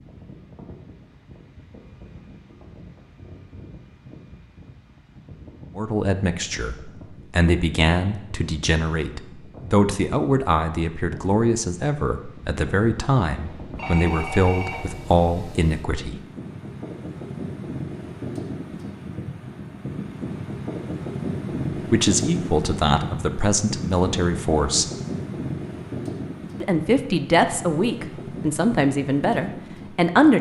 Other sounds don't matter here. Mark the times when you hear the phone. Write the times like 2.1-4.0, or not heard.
13.3-14.9.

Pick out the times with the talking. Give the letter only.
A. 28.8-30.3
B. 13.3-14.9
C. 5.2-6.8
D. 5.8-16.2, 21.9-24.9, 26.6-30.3
D.